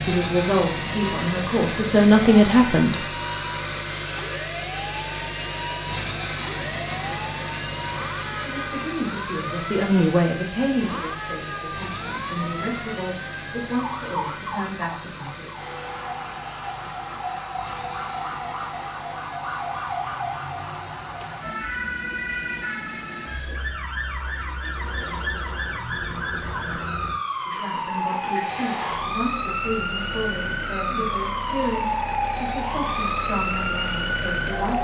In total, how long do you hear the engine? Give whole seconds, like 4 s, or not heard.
35 s.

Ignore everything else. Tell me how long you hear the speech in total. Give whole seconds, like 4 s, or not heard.
17 s.